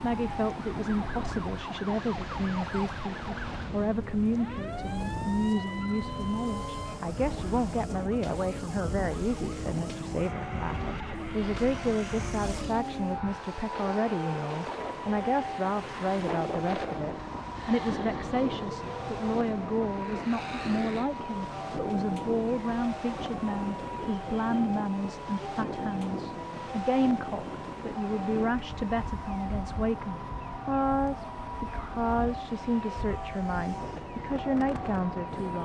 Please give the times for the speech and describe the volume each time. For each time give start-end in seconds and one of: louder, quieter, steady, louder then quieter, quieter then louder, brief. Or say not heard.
0.0-35.6 steady.